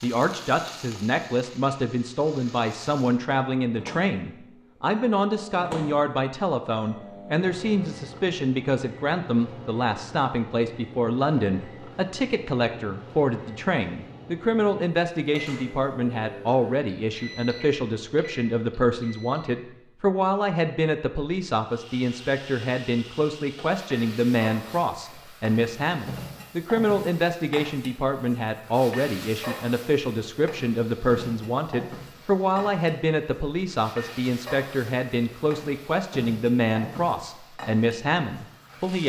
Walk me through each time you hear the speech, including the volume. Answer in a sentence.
You can hear the speech from 0.0 to 39.0 s, at a steady volume.